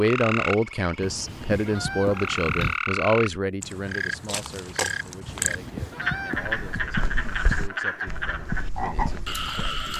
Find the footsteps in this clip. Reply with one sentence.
The footsteps can be heard from 6.6 to 9.9 s.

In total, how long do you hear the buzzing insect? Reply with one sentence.
You can't hear the buzzing insect here.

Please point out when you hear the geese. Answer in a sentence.
The geese can be heard from 1.0 to 2.8 s and from 5.2 to 6.9 s.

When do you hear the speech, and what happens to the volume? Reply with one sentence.
The speech can be heard from 0.0 to 9.9 s, getting quieter.